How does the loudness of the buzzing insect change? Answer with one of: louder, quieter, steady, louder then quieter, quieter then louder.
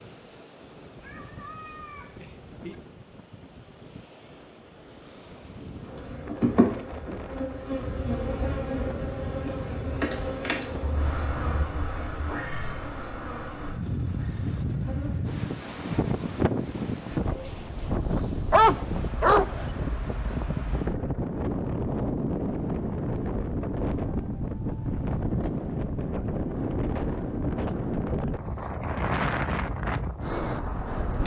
quieter.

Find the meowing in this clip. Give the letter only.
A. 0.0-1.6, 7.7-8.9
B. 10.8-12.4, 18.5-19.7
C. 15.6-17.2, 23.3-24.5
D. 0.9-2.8
D.